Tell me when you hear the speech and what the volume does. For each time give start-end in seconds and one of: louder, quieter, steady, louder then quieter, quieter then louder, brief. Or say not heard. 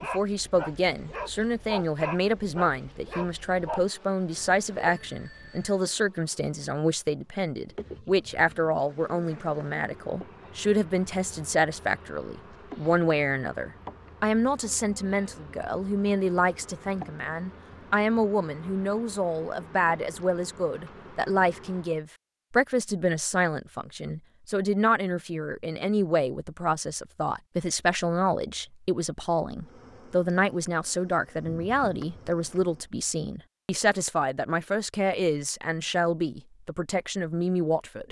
0.0-38.0 steady.